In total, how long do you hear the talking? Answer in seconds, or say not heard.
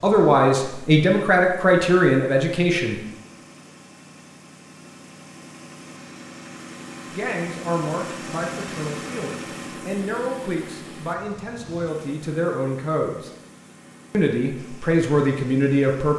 11 s.